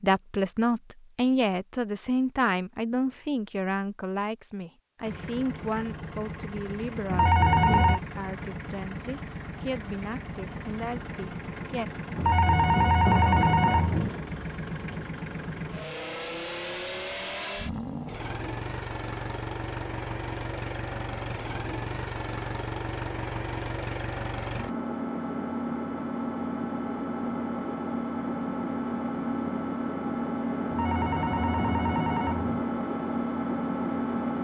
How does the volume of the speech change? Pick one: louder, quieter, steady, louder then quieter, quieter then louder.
quieter.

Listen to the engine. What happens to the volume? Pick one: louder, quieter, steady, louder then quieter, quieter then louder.
louder.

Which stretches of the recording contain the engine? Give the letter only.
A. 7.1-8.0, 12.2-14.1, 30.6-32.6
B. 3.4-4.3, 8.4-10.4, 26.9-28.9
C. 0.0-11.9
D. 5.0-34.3
D.